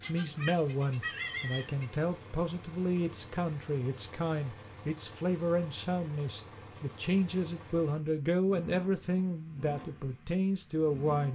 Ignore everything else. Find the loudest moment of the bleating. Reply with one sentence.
The volume of the bleating peaks at 1 second.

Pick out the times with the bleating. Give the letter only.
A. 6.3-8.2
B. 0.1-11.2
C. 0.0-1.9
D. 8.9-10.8
C.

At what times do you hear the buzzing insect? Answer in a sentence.
The buzzing insect can't be heard in this clip.